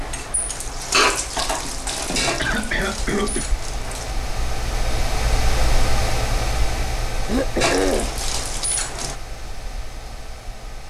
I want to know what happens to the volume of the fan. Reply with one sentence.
The volume of the fan goes up, then down.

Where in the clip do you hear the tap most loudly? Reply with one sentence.
The loudest moment of the tap is at 1 second.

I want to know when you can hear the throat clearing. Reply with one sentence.
The throat clearing can be heard from 2.4 to 3.5 s and from 7.2 to 8.1 s.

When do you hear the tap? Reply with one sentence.
You can hear the tap from 0.0 to 4.2 s and from 7.6 to 9.2 s.